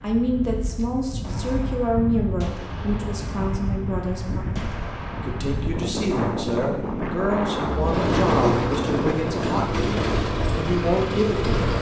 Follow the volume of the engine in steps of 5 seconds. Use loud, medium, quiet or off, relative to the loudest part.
off, loud, loud.